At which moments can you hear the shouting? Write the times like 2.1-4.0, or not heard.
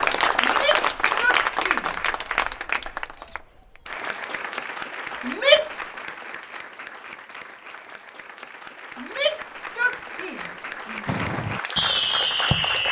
0.4-1.9, 5.2-5.8, 8.9-11.2.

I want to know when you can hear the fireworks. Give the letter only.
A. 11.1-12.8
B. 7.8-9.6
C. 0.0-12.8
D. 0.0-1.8
A.